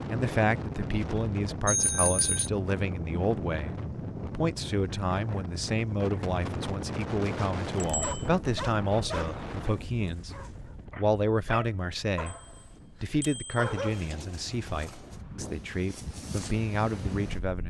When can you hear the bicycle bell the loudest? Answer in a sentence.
The volume of the bicycle bell peaks at 2 seconds.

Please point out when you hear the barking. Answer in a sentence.
You can hear the barking from 8.0 to 9.2 s and from 10.1 to 14.1 s.